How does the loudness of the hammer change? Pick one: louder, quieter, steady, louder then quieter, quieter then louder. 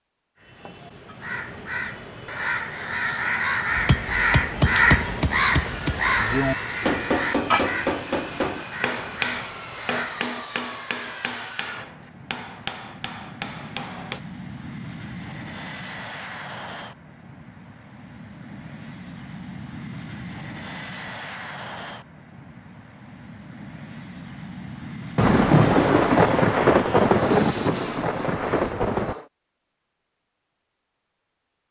quieter.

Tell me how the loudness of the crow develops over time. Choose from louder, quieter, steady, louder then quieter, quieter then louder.
louder then quieter.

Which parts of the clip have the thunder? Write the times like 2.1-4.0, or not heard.
25.1-29.1.